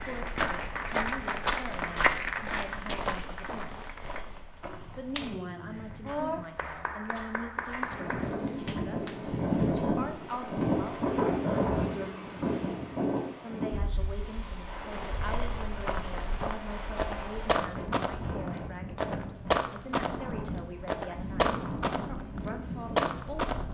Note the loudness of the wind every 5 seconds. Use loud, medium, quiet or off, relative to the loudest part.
off, loud, loud, medium, medium.